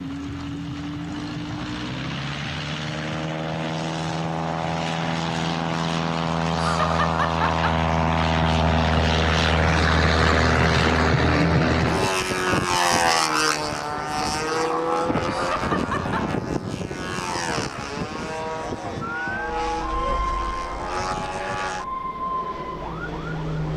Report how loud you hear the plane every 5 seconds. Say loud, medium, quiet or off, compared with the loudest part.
medium, loud, loud, medium, medium.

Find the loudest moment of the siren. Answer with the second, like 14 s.
20 s.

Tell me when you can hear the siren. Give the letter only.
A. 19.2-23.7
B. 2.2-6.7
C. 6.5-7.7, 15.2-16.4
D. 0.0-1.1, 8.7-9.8
A.